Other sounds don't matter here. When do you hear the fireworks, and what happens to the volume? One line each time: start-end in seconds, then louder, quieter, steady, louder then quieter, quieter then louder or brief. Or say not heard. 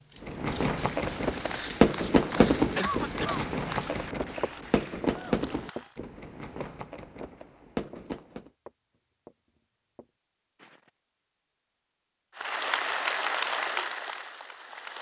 0.2-8.5 quieter.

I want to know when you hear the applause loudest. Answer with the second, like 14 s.
13 s.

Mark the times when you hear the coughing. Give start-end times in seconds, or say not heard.
2.8-3.5.